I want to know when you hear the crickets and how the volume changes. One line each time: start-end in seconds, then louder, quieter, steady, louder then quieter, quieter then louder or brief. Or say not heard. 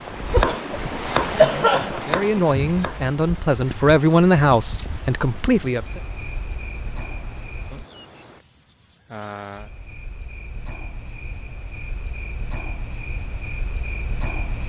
0.0-14.6 quieter.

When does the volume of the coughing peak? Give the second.
2 s.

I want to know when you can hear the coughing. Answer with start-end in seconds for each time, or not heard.
0.3-2.0.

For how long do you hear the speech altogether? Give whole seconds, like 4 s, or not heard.
4 s.